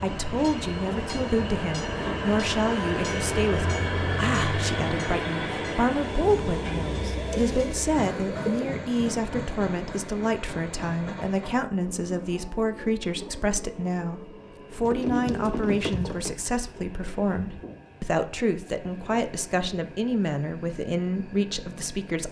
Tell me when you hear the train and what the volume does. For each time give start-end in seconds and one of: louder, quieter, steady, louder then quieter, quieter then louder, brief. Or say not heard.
0.0-22.2 quieter.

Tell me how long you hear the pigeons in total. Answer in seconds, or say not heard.
3 s.